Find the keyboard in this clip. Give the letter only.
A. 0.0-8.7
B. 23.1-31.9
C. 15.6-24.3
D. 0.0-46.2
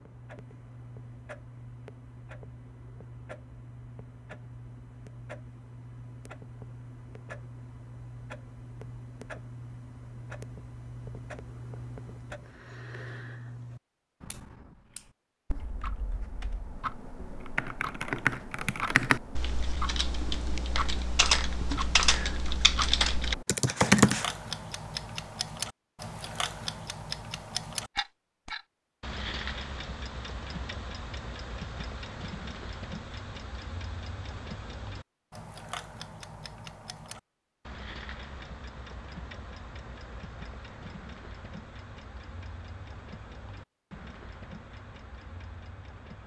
C.